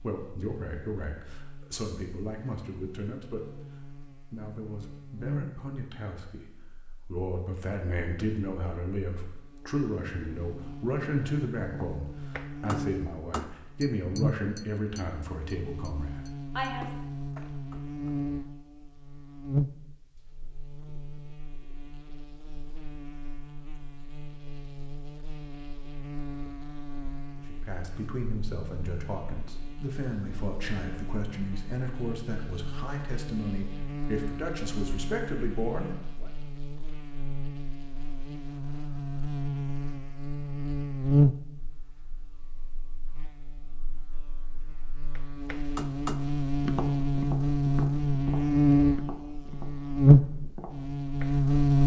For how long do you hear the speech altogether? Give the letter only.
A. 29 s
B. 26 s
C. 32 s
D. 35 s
B.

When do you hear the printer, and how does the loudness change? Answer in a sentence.
The printer can't be heard in this clip.